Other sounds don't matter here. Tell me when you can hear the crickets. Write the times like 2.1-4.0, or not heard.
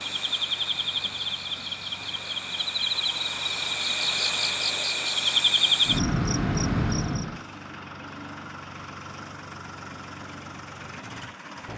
0.0-7.4.